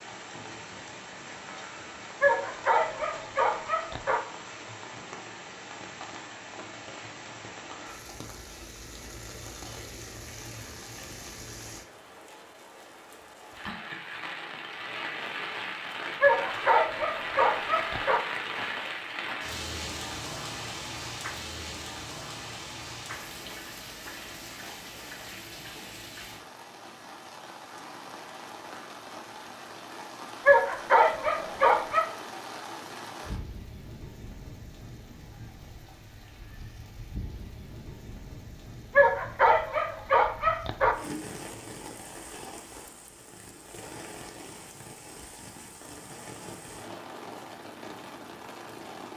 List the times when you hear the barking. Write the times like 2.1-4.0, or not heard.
2.2-4.2, 16.2-18.2, 30.4-32.1, 39.0-41.0.